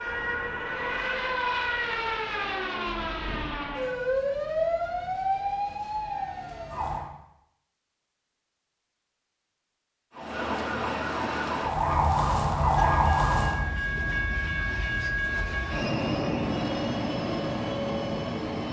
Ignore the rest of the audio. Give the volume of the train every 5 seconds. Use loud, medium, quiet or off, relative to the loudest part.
off, off, loud, loud.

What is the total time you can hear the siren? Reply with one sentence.
The siren can be heard for 11 seconds in total.